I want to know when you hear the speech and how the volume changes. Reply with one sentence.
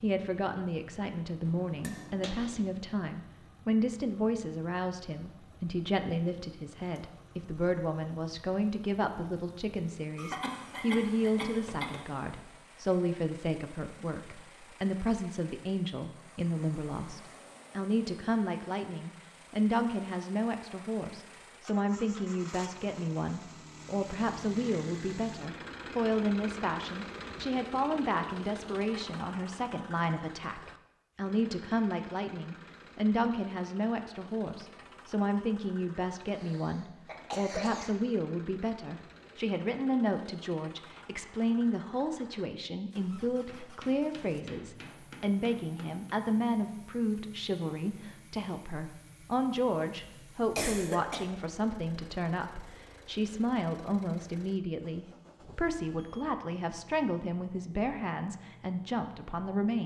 You can hear the speech from 0.0 to 59.8 s, at a steady volume.